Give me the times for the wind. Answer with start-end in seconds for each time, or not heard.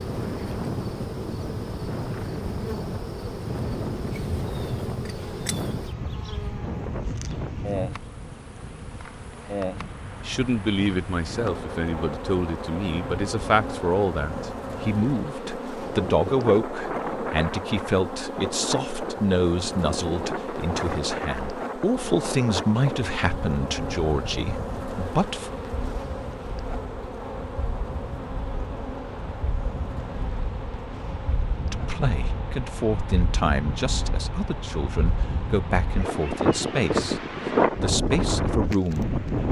0.0-39.4.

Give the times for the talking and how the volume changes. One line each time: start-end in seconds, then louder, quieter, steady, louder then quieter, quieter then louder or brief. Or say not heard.
10.2-25.6 steady
31.6-39.2 steady.